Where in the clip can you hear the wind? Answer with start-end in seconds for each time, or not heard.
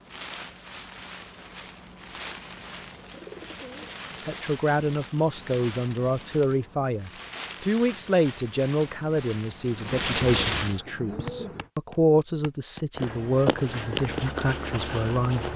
0.0-10.8.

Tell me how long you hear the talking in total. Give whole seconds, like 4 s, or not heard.
11 s.